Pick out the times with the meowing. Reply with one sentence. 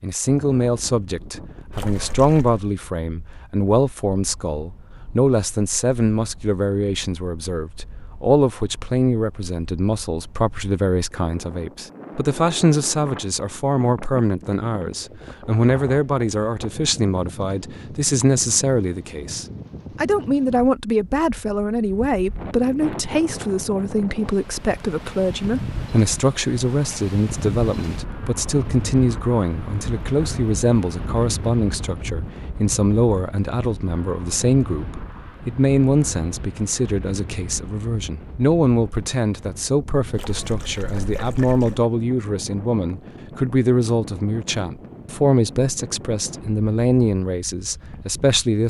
You can't hear the meowing here.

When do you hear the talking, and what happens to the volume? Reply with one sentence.
The talking can be heard from 0.0 to 48.6 s, at a steady volume.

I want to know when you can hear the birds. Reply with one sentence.
You can't hear the birds here.